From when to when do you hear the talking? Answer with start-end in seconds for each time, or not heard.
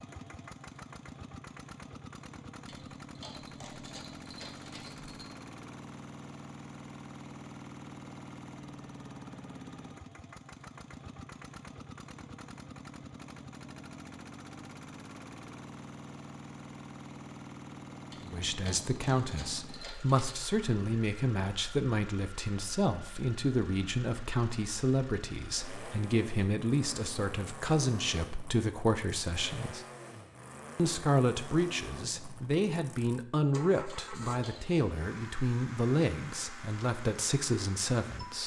18.2-29.9, 30.8-38.4.